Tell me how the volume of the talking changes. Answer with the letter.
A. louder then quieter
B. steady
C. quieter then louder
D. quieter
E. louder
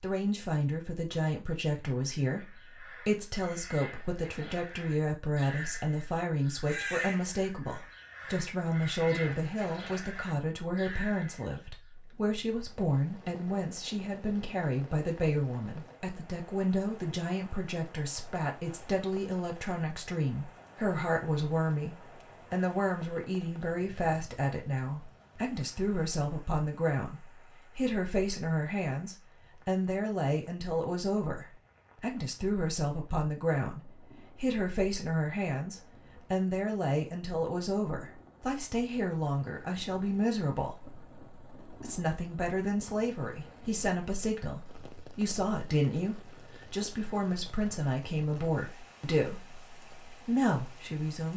B.